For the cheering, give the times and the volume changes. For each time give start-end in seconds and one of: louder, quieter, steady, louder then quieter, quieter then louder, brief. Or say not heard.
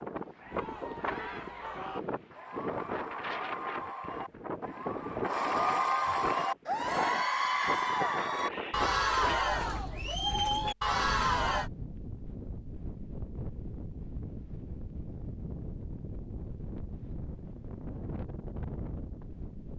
0.4-11.7 louder.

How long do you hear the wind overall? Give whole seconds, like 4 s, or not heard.
20 s.